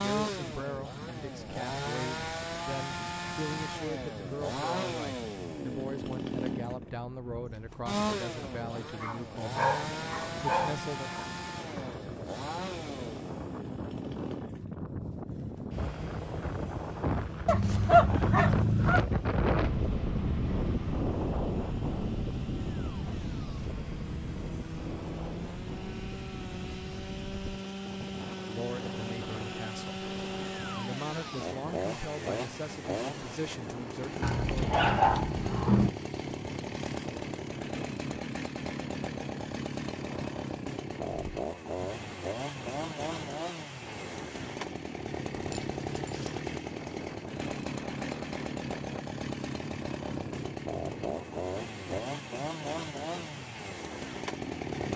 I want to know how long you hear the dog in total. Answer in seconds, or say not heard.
7 s.